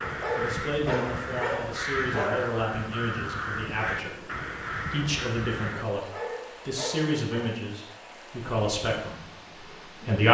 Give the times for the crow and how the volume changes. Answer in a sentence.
You can hear the crow from 0.0 to 5.8 s, at a steady volume.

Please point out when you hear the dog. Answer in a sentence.
You can hear the dog from 0.0 to 2.5 s and from 6.0 to 7.5 s.